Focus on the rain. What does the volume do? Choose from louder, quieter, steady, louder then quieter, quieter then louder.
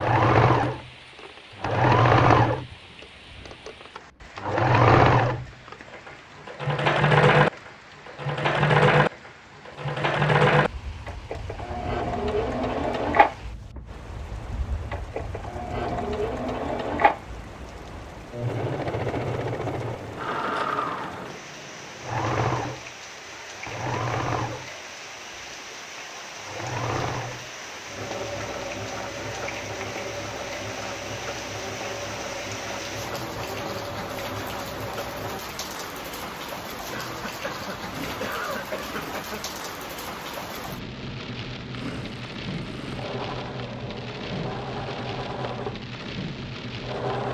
louder.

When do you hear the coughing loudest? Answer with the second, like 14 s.
38 s.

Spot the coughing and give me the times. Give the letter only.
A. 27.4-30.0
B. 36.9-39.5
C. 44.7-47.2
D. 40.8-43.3
B.